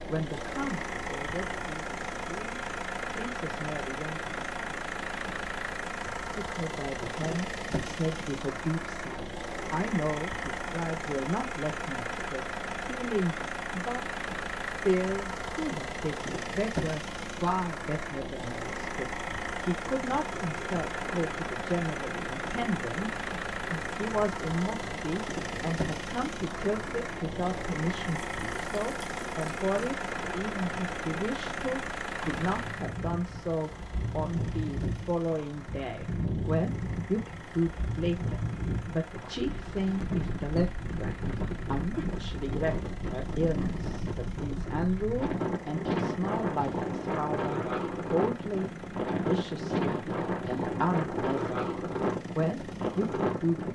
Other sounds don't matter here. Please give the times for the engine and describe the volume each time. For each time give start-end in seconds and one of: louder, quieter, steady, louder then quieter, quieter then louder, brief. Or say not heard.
0.0-53.7 quieter.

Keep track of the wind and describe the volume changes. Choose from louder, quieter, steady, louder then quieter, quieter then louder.
louder.